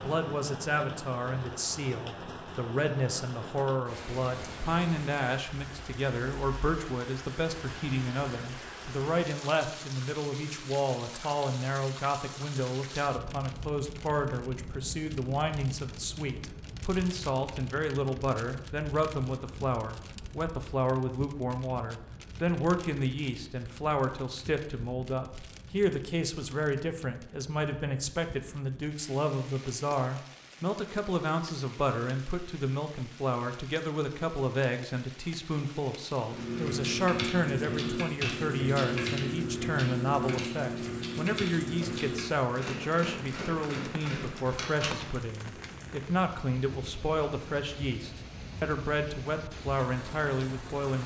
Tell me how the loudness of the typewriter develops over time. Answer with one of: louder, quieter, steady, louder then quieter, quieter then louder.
quieter.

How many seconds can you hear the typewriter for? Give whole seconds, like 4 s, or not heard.
9 s.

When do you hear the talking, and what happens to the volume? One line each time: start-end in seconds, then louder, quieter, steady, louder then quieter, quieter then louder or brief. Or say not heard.
0.0-51.0 steady.